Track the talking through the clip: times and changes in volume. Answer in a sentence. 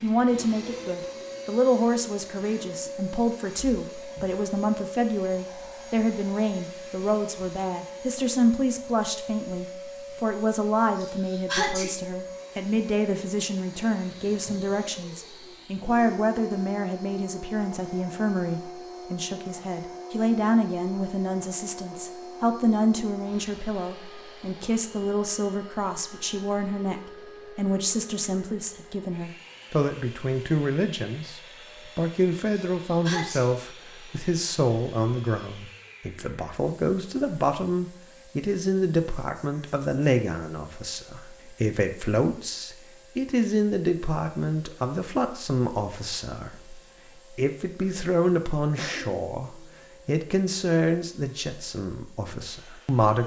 You can hear the talking from 0.0 to 53.2 s, at a steady volume.